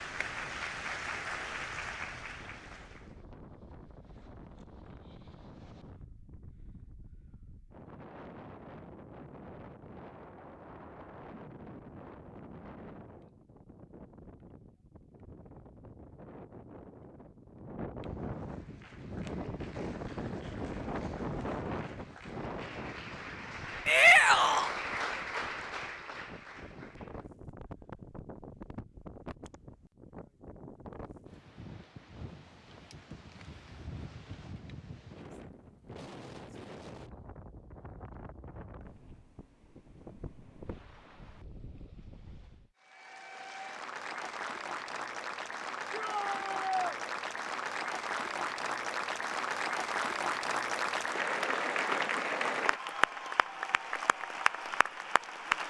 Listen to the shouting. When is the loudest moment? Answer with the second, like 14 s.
24 s.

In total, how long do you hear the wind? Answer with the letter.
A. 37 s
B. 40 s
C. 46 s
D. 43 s
D.